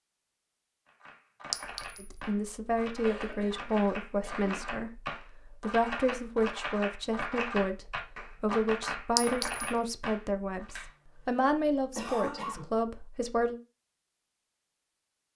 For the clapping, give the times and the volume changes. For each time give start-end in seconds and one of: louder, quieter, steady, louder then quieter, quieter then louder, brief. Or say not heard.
0.8-10.8 louder.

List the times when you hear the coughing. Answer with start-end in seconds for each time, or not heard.
3.0-4.8, 10.7-12.7.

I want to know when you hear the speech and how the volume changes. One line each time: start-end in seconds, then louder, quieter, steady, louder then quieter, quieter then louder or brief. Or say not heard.
1.9-13.6 steady.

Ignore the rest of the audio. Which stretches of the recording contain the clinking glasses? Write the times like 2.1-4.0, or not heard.
1.5-2.2, 9.2-9.7.